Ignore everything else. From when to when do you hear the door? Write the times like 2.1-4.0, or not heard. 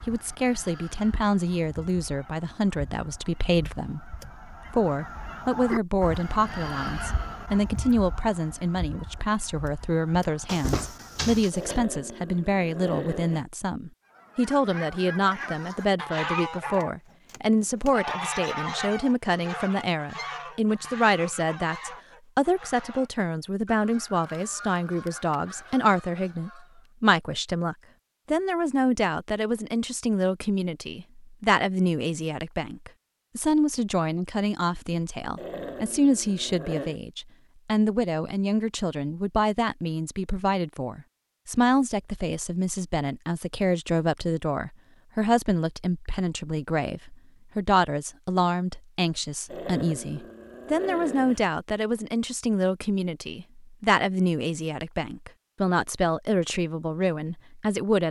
10.4-11.8.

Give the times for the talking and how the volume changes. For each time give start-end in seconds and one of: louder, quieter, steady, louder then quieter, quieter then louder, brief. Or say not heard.
0.1-58.0 steady.